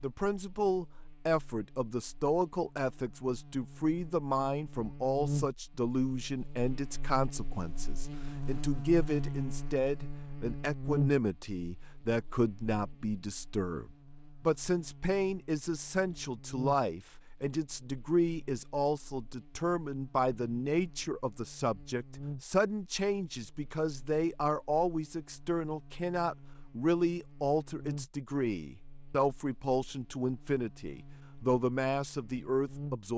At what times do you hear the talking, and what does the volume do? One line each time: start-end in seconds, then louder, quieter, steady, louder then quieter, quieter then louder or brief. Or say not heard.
0.0-33.1 steady.